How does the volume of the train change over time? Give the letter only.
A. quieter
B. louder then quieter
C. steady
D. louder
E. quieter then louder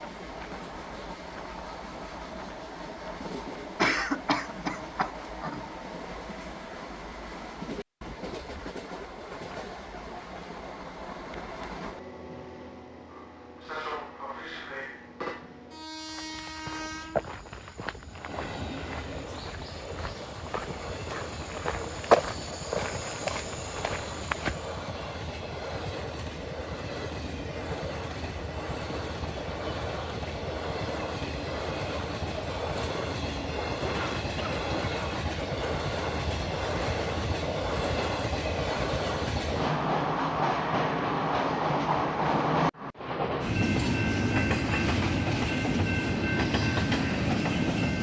D.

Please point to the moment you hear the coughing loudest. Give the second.
4 s.